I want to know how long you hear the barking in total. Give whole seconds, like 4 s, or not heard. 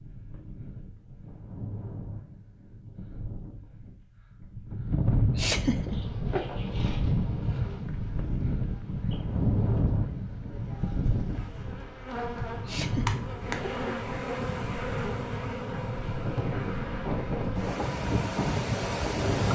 not heard.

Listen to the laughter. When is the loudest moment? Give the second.
6 s.